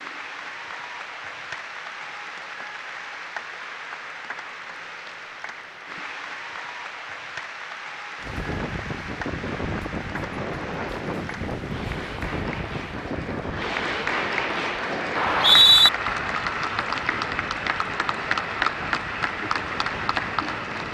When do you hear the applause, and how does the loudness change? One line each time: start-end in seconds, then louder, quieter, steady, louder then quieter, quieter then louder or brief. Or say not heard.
0.0-20.8 louder.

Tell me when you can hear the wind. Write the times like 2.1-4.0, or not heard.
8.2-20.8.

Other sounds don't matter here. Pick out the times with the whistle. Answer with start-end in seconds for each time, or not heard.
15.2-15.9.